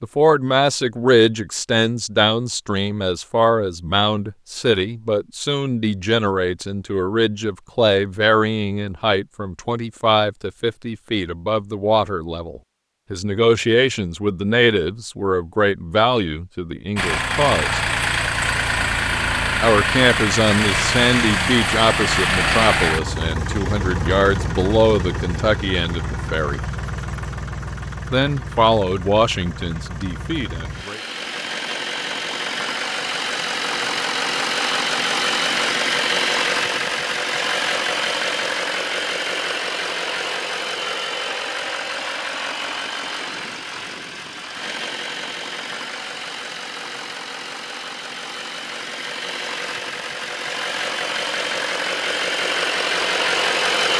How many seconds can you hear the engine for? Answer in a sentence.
You can hear the engine for 37 seconds altogether.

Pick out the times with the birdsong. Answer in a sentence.
The birdsong can't be heard in this clip.